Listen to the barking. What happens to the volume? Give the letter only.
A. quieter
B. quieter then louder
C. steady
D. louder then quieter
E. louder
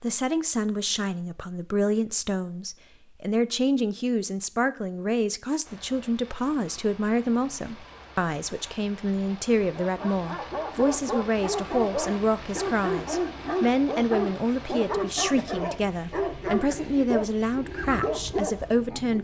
C.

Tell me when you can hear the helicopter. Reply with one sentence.
You can't hear the helicopter here.